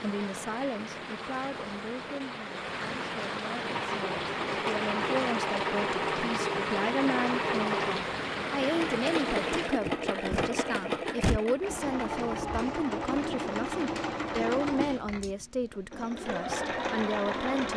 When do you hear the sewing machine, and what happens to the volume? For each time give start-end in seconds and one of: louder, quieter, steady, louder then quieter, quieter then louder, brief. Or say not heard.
3.6-17.7 steady.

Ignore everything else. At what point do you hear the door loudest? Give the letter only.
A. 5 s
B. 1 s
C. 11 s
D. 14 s
C.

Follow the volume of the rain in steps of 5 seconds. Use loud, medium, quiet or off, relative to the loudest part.
loud, loud, off, off.